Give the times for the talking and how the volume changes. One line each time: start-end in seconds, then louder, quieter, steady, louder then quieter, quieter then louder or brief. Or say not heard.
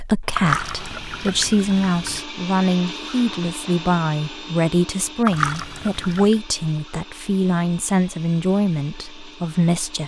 0.0-10.0 steady.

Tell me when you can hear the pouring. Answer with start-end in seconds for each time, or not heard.
0.3-2.2, 5.2-6.3.